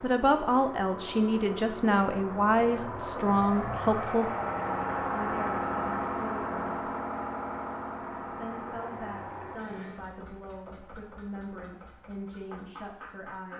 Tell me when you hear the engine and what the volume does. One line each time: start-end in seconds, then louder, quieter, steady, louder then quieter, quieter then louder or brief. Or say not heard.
0.0-13.5 louder then quieter.